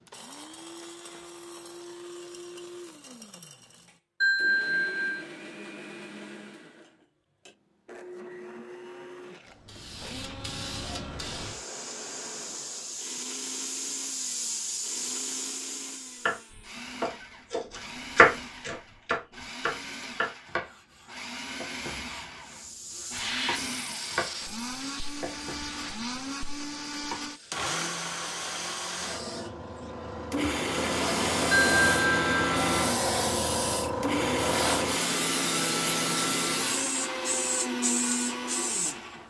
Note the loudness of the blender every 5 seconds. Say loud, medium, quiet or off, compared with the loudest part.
quiet, quiet, quiet, quiet, medium, medium, loud, loud.